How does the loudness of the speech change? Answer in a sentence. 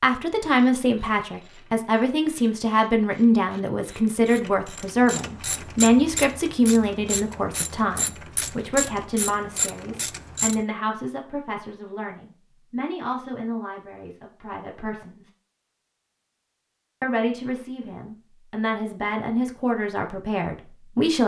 The volume of the speech goes down, then up.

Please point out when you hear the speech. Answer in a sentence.
You can hear the speech from 0.0 to 15.3 s and from 17.0 to 21.2 s.